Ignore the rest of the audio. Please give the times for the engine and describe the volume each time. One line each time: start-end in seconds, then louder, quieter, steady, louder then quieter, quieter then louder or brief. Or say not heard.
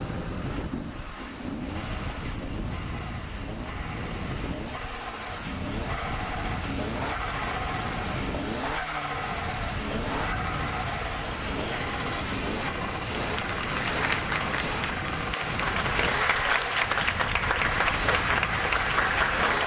0.0-19.6 louder.